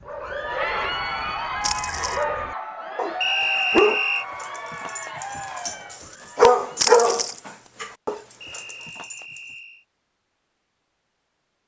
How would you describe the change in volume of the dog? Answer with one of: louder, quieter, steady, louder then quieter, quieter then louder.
louder then quieter.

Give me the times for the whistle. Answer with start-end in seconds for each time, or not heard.
3.2-4.2, 8.4-9.8.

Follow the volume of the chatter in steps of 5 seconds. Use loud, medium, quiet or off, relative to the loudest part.
loud, medium, off.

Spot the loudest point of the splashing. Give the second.
7 s.